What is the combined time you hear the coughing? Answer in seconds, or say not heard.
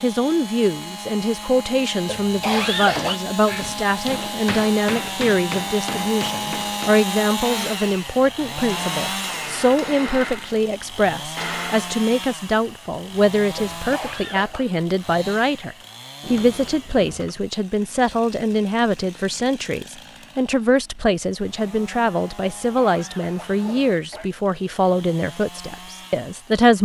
4 s.